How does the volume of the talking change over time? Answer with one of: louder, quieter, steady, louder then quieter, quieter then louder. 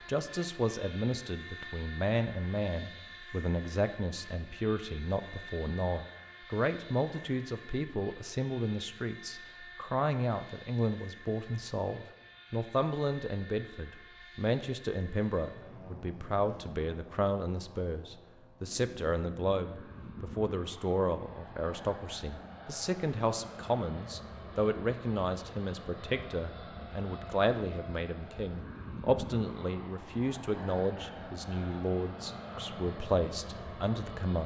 steady.